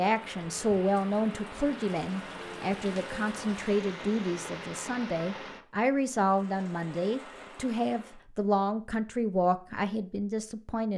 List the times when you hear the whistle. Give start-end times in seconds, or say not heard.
not heard.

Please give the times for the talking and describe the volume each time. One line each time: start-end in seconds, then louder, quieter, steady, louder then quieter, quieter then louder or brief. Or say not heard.
0.0-10.9 steady.